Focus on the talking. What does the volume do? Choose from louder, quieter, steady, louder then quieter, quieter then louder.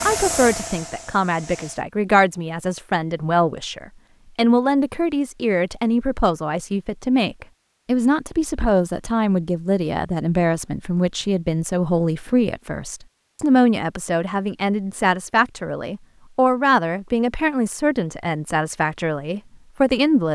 steady.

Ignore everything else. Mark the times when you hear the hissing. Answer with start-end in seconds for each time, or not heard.
0.0-1.9.